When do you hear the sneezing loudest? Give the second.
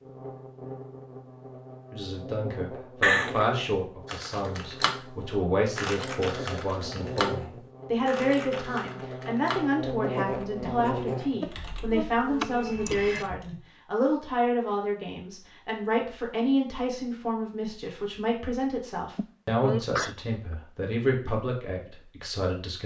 3 s.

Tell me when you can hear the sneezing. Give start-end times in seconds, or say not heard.
3.0-3.5, 12.4-13.3, 19.1-20.6.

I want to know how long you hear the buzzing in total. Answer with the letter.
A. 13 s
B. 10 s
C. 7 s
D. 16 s
A.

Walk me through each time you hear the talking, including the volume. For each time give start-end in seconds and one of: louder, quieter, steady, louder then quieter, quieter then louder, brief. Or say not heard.
1.9-22.8 steady.